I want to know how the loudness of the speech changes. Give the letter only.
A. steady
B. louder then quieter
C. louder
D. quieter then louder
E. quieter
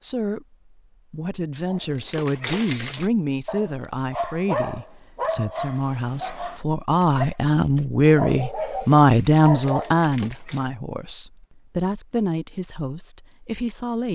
B.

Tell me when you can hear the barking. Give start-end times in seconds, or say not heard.
1.6-10.7.